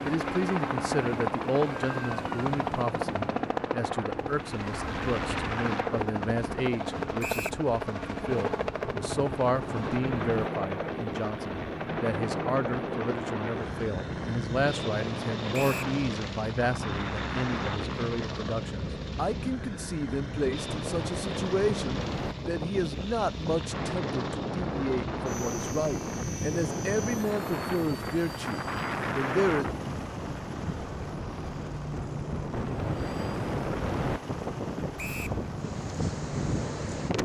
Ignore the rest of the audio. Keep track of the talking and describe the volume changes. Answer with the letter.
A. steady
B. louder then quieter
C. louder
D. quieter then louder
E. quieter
A.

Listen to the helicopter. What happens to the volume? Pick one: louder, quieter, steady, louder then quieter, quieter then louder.
quieter.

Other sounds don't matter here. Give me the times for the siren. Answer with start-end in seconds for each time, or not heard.
not heard.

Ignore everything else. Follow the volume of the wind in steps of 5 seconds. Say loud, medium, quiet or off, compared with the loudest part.
medium, medium, medium, medium, loud, loud, loud, loud.